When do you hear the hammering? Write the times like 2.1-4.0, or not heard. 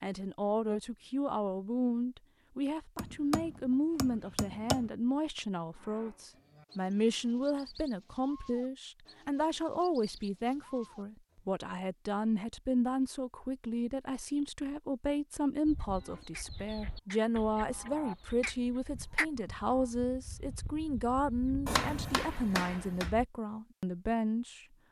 3.0-4.9, 21.6-23.1.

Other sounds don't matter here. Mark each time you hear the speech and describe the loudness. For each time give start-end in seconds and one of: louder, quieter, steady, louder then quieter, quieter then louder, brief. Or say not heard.
0.0-24.6 steady.